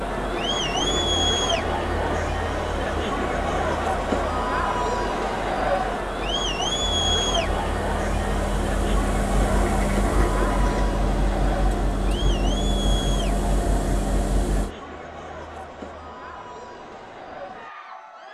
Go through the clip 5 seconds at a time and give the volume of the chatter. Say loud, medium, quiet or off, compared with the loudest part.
loud, loud, medium, quiet.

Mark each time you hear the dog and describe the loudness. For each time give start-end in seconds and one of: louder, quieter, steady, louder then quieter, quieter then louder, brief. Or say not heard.
not heard.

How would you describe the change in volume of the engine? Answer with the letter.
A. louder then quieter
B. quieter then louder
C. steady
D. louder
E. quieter
D.